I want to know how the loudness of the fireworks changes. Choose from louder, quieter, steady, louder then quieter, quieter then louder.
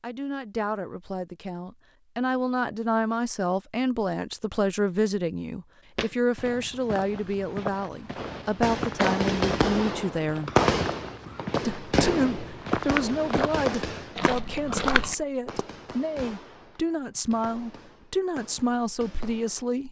quieter.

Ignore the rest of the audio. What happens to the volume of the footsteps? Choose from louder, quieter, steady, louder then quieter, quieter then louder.
louder.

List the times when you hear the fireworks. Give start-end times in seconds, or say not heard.
8.2-19.7.